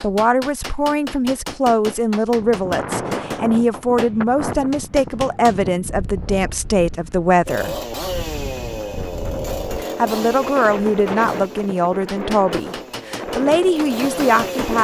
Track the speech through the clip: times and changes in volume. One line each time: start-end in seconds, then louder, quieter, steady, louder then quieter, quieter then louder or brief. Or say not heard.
0.0-7.8 steady
9.8-14.7 quieter then louder.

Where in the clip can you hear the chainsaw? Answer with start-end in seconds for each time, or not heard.
7.5-14.7.